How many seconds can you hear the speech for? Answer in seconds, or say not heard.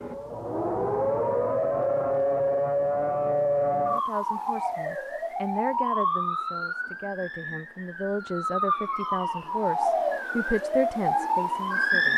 8 s.